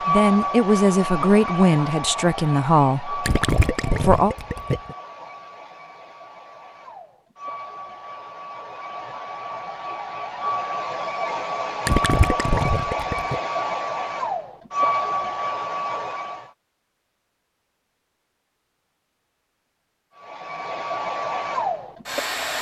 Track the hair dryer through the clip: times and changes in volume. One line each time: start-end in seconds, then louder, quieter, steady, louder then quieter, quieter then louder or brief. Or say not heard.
0.0-16.5 quieter then louder
20.1-22.5 brief.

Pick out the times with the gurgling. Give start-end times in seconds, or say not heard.
3.2-5.0, 11.8-13.4.